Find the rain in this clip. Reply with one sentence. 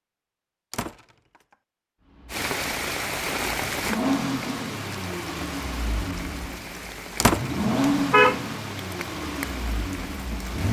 The rain can be heard from 2.2 to 10.6 s.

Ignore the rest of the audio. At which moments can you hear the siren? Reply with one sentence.
You can't hear the siren here.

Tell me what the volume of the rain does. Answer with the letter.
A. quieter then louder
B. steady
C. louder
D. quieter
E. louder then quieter
D.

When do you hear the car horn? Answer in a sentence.
The car horn can be heard from 7.4 to 8.5 s.